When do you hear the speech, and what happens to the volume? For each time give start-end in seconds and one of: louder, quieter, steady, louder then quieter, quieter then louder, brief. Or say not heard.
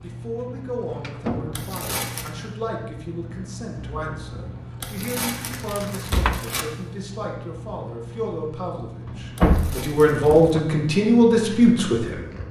0.0-12.2 louder.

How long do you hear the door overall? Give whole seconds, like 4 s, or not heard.
3 s.